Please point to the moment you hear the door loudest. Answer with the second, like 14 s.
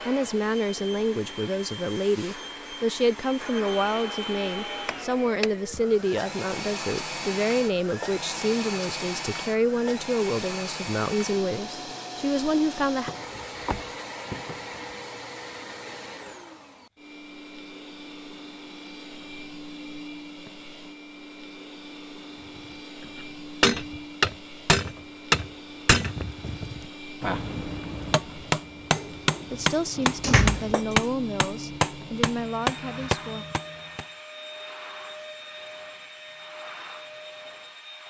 30 s.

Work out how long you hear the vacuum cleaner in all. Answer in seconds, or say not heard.
38 s.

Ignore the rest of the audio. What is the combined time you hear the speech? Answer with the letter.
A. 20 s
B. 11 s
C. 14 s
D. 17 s
D.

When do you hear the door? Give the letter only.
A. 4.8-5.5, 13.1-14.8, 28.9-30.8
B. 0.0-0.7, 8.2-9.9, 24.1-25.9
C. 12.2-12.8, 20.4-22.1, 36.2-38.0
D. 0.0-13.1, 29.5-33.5
A.